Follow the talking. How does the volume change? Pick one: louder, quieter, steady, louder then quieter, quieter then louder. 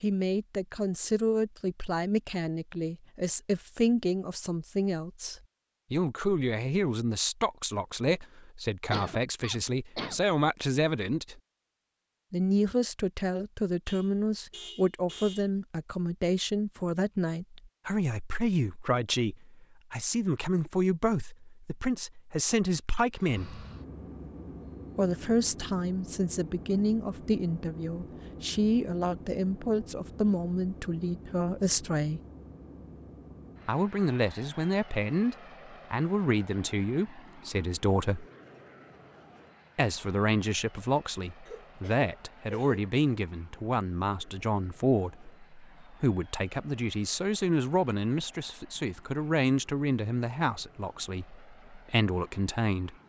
steady.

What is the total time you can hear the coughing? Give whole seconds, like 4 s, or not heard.
3 s.